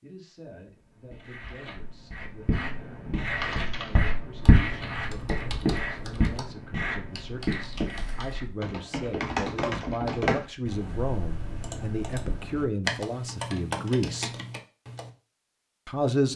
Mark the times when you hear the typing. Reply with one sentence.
You can hear the typing from 3.4 to 15.1 s.